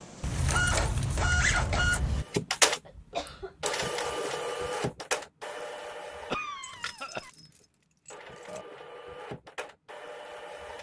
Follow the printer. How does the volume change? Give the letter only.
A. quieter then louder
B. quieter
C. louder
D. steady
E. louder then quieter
A.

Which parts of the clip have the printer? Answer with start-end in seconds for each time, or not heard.
0.0-10.7.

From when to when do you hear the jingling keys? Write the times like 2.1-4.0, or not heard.
0.2-2.2, 6.6-8.7.